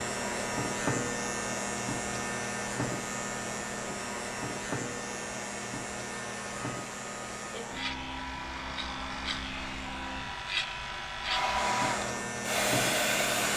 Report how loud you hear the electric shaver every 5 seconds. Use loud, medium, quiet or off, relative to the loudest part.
loud, medium, loud.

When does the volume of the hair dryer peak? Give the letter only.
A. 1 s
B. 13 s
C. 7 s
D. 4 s
B.